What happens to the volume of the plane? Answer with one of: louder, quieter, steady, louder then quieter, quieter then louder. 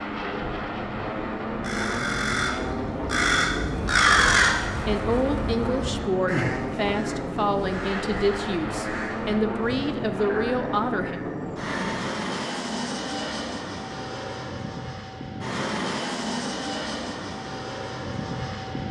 steady.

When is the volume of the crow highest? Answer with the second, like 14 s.
4 s.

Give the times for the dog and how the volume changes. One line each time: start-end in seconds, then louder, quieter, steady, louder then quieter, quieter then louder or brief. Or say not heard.
not heard.